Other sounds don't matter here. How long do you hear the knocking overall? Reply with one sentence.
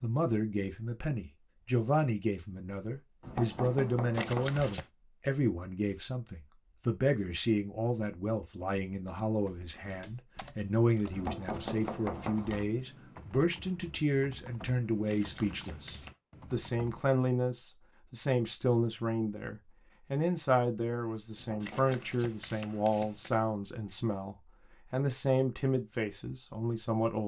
The knocking can be heard for 4 seconds in total.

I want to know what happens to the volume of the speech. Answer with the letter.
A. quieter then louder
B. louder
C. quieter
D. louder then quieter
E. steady
E.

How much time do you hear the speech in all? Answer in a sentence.
You can hear the speech for 27 seconds altogether.